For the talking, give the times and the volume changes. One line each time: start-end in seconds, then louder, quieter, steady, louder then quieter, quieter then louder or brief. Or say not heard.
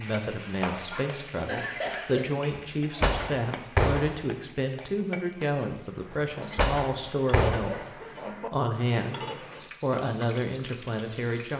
0.0-11.5 steady.